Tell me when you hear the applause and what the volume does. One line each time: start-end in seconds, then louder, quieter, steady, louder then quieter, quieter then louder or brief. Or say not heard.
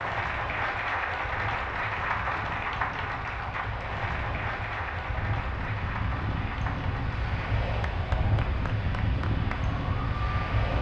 0.0-10.5 quieter.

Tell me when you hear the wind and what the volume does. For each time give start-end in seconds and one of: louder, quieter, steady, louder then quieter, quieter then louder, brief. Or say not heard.
0.0-10.7 louder.